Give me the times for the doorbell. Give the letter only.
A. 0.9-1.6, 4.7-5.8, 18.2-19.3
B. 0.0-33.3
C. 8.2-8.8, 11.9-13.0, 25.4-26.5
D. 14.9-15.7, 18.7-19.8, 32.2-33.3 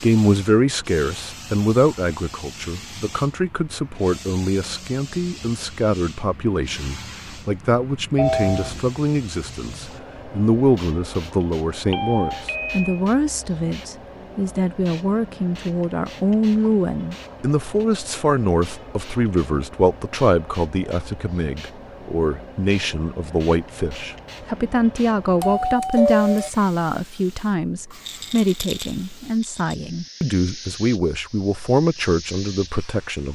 C.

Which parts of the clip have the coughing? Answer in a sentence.
The coughing can't be heard in this clip.